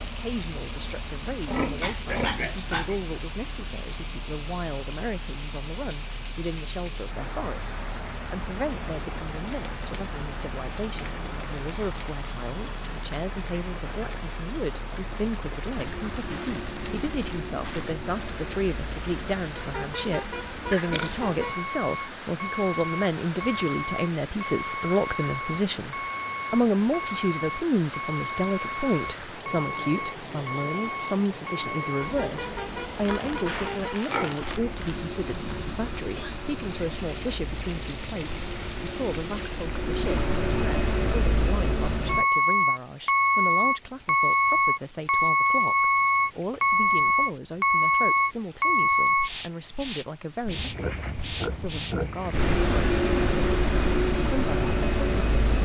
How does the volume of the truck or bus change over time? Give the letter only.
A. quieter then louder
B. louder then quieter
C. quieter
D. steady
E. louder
E.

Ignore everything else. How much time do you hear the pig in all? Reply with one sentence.
You can hear the pig for 6 seconds altogether.